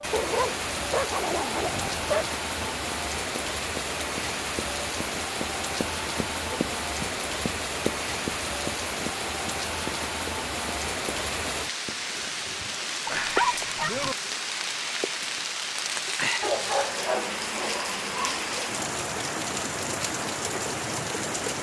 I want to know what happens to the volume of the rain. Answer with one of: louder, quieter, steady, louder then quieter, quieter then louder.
steady.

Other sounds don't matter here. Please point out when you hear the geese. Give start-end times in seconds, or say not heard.
not heard.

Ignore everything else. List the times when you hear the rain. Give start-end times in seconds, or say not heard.
0.0-21.5.